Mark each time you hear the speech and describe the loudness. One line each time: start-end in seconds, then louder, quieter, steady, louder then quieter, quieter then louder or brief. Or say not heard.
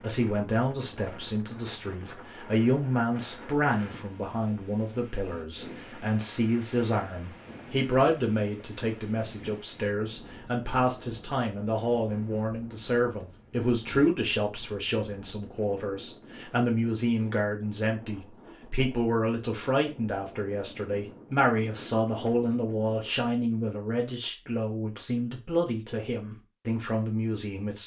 0.0-27.8 steady.